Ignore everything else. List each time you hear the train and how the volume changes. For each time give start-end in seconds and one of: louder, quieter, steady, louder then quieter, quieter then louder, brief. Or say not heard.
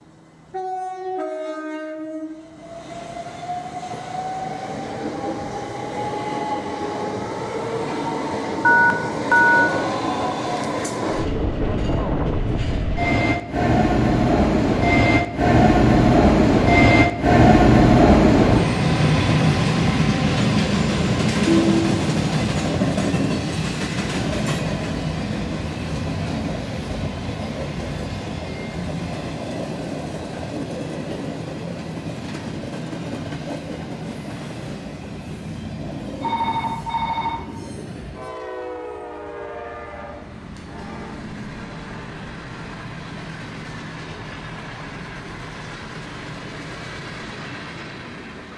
0.0-48.5 louder then quieter.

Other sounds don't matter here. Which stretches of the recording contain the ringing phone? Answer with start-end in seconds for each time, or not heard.
8.6-9.8, 21.4-22.0, 36.2-37.5.